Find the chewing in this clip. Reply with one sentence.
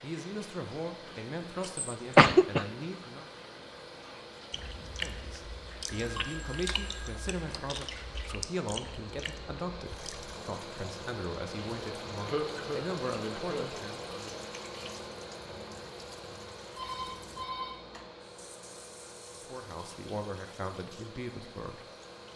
The chewing can be heard from 4.5 to 10.3 s.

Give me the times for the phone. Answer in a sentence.
The phone can be heard from 5.8 to 7.9 s and from 16.8 to 18.1 s.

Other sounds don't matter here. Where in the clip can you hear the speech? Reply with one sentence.
You can hear the speech from 0.0 to 3.2 s, from 4.8 to 14.2 s and from 19.3 to 21.9 s.